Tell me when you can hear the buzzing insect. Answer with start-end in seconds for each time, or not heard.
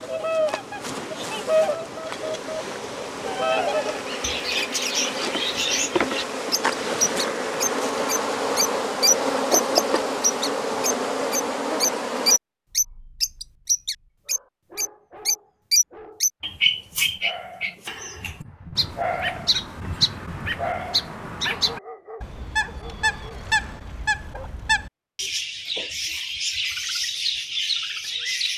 0.0-12.4.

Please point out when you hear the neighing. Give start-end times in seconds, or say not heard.
not heard.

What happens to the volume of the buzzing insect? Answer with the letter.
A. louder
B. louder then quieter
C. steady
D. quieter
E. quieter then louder
A.